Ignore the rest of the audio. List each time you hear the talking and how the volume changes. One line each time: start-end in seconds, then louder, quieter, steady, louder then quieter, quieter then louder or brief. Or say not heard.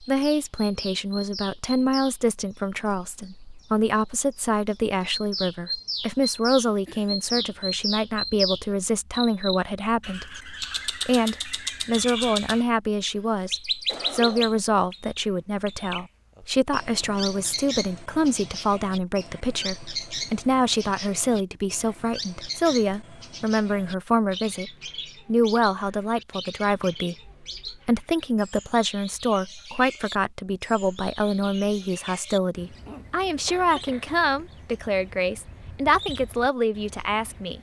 0.0-37.5 steady.